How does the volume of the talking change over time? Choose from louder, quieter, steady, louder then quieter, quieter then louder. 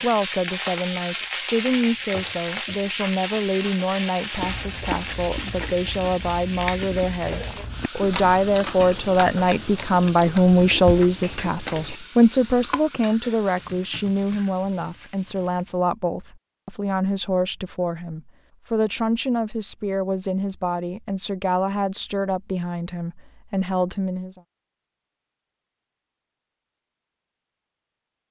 louder then quieter.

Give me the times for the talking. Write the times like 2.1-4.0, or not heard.
0.0-24.4.